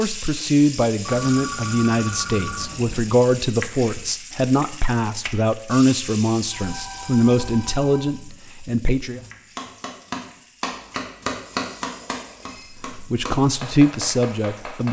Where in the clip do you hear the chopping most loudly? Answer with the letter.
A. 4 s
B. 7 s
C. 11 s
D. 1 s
C.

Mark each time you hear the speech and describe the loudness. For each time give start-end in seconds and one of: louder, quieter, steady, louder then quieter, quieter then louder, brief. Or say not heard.
0.0-9.2 steady
12.9-14.8 brief.